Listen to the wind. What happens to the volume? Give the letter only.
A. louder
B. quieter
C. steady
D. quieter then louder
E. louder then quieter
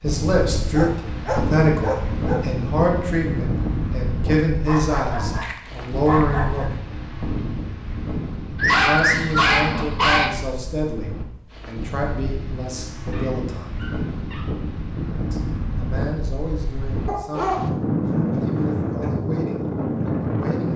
D.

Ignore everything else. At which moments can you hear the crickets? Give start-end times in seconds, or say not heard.
not heard.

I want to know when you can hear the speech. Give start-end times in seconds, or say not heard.
0.0-6.7, 8.7-13.7, 15.3-17.6, 18.4-20.7.